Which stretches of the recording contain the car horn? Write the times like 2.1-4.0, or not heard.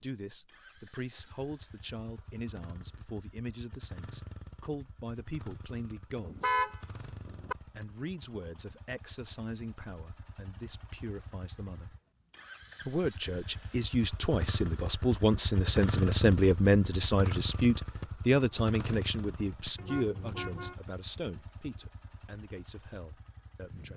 6.2-7.5, 19.8-20.8.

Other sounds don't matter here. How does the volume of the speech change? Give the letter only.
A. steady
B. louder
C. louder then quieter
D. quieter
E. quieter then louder
C.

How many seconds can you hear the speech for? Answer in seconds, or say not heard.
22 s.